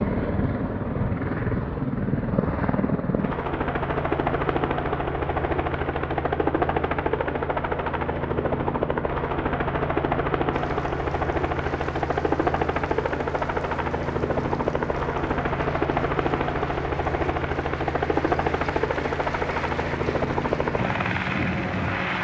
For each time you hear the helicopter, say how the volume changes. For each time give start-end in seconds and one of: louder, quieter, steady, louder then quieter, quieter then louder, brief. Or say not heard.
0.0-22.2 steady.